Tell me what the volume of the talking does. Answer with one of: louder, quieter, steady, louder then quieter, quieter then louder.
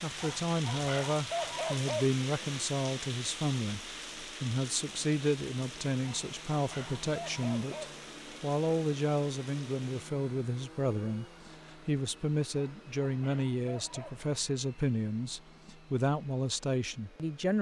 steady.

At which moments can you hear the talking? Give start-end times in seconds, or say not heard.
0.0-17.5.